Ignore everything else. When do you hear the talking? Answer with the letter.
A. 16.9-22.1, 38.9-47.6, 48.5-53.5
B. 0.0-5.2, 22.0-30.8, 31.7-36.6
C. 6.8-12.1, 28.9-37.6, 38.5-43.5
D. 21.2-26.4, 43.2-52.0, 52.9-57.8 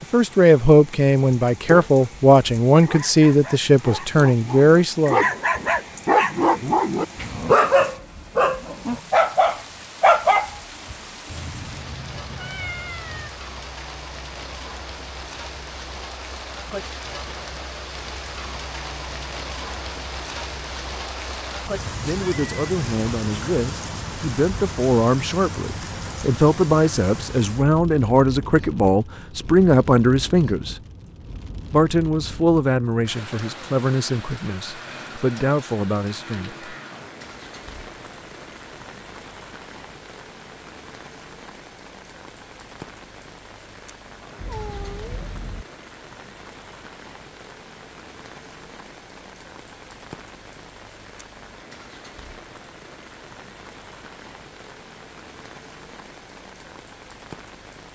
B.